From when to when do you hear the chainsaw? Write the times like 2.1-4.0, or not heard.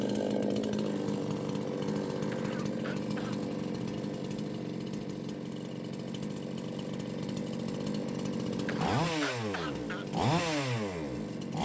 0.0-11.6.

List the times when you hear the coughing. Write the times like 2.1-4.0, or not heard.
2.3-3.4, 8.7-10.1.